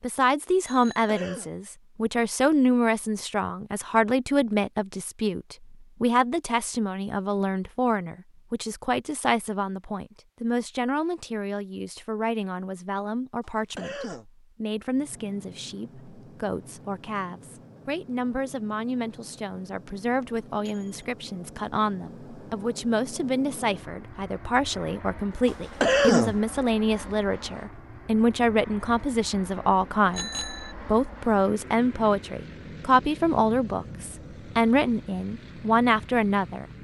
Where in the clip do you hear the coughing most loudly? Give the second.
26 s.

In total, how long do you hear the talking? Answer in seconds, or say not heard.
37 s.